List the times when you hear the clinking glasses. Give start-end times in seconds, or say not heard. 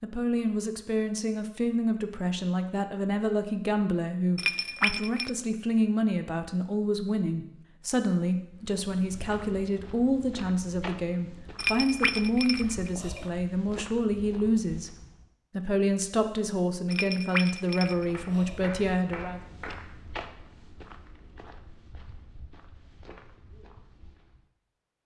4.3-5.3, 11.6-13.3, 16.9-18.6.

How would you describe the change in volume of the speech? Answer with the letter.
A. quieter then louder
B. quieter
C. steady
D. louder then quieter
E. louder
C.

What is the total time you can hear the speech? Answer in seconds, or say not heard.
19 s.